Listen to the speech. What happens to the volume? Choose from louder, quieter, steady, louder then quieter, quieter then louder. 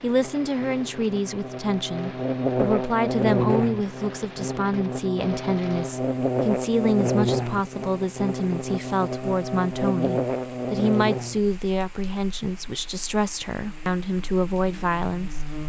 steady.